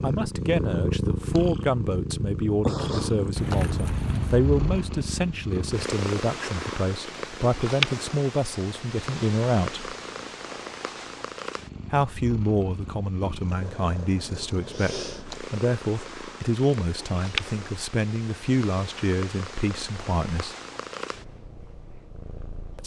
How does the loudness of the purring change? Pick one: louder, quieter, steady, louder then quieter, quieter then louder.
quieter.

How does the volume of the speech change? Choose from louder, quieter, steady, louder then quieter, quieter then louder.
steady.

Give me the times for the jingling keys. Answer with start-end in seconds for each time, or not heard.
3.4-4.8.